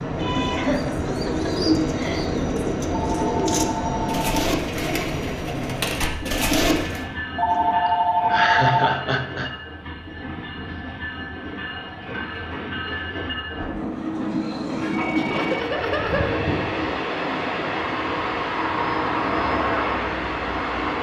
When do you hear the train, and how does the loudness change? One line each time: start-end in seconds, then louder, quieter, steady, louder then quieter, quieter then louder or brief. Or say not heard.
0.0-20.9 quieter then louder.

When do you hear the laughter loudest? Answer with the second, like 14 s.
9 s.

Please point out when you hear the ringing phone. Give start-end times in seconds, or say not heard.
2.9-4.5, 7.3-8.9, 14.8-15.7.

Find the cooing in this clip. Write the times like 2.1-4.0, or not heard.
0.1-7.0.